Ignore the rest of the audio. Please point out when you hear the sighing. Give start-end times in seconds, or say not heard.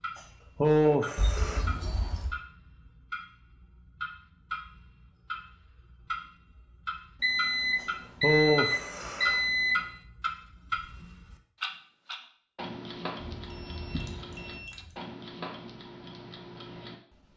0.6-1.6, 7.8-9.4, 13.8-14.8.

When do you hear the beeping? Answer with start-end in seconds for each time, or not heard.
1.1-2.4, 7.2-9.8, 13.3-14.9.